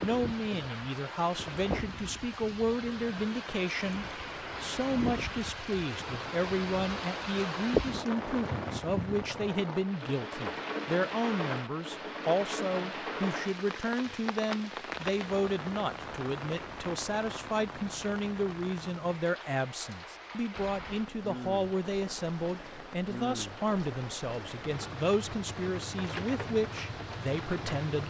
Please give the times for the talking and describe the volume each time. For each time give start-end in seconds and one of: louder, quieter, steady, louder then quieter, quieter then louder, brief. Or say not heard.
0.0-28.0 steady.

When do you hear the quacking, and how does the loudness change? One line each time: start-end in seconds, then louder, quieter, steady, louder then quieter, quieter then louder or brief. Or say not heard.
not heard.